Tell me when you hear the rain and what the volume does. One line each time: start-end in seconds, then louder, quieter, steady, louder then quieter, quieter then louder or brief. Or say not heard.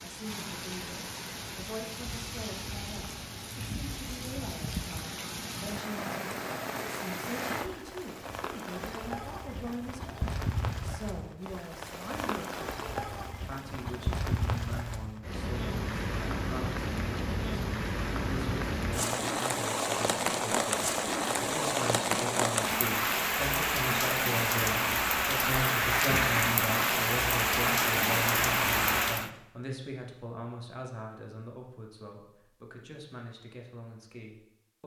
0.0-29.3 louder.